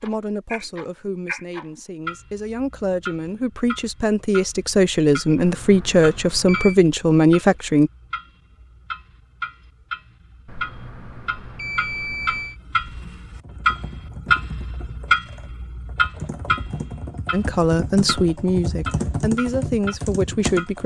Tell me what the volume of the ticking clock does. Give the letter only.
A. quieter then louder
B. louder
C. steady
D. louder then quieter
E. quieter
D.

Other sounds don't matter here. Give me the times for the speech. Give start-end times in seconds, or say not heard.
0.0-7.9, 17.3-20.8.